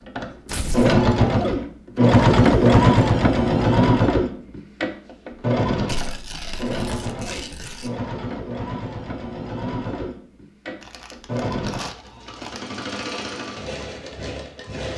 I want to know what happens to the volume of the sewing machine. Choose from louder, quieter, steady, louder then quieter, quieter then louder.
quieter.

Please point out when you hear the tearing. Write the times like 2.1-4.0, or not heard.
0.5-1.0, 5.8-7.9, 10.8-12.6.